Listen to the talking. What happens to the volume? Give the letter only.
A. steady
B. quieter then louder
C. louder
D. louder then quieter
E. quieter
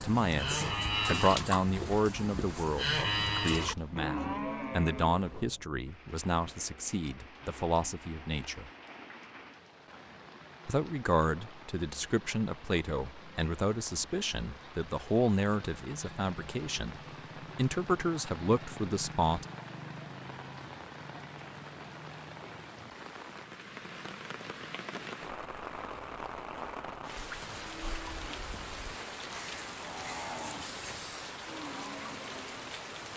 A.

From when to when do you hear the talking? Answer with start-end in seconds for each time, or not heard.
0.0-8.7, 10.7-19.4.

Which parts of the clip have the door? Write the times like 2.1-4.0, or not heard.
not heard.